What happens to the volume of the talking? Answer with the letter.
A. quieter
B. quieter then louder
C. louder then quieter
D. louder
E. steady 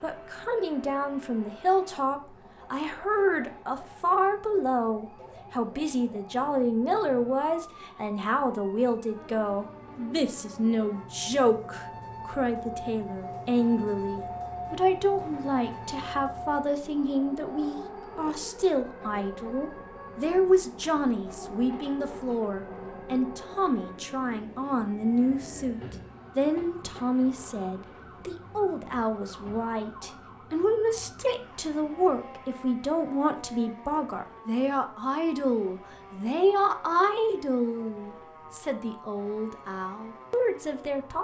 E.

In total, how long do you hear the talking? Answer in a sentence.
The talking can be heard for 41 seconds in total.